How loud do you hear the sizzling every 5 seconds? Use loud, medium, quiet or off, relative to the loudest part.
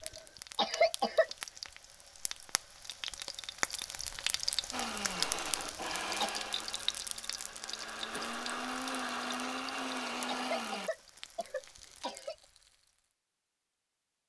loud, loud, quiet.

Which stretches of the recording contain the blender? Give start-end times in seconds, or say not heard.
4.7-10.9.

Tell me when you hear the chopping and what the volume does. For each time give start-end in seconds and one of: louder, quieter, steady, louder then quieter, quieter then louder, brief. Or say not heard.
not heard.